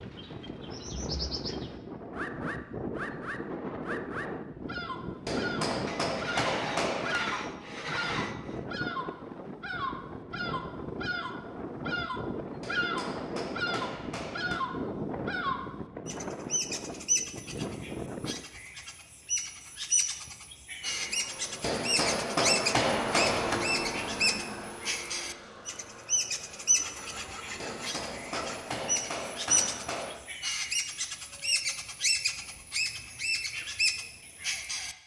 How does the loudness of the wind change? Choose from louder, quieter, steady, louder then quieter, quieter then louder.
steady.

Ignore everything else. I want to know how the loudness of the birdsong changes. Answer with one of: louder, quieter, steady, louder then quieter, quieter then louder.
louder.